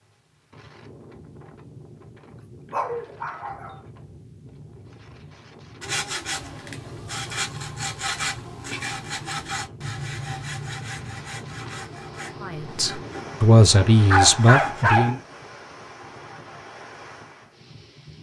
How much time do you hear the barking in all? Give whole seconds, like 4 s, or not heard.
2 s.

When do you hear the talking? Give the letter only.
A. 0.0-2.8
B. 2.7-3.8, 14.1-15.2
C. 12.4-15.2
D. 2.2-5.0
C.